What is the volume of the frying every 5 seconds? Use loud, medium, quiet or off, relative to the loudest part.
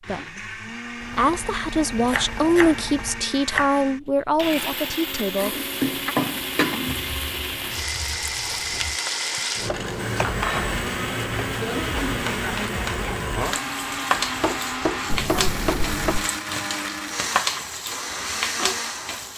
off, loud, loud, loud.